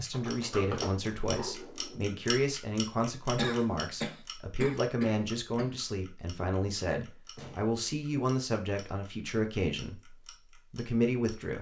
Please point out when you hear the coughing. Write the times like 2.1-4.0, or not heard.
3.4-5.7.